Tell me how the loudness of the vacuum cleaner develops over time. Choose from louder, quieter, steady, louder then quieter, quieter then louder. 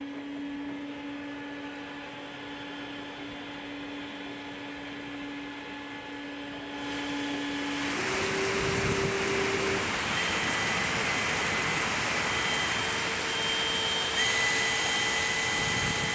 louder.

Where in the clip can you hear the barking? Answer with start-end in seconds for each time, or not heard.
not heard.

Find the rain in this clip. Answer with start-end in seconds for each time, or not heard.
7.5-16.1.